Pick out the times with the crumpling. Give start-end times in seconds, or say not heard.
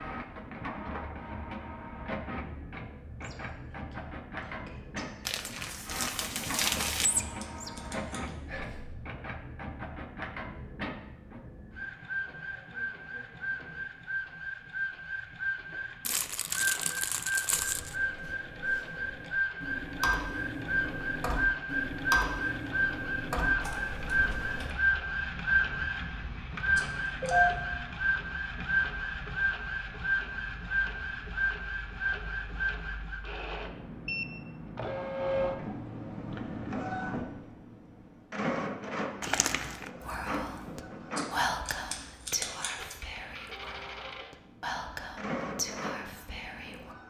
5.2-7.1, 16.1-17.9, 39.2-39.9.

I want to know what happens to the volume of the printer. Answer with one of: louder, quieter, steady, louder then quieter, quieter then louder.
louder then quieter.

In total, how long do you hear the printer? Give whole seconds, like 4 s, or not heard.
47 s.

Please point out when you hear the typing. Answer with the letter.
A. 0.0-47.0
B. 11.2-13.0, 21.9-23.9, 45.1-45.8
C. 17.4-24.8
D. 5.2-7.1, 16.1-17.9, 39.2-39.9
C.